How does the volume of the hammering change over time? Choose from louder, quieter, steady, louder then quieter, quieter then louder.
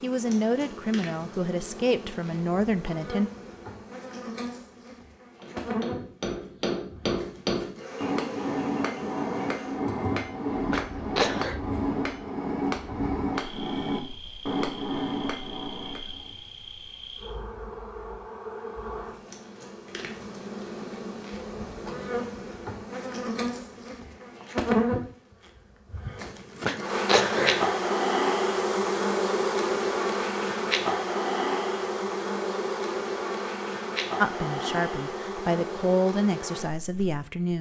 steady.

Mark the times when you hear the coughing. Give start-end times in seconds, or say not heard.
10.7-11.6, 26.6-27.7.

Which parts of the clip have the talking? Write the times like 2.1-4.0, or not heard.
0.0-3.3, 34.2-37.5.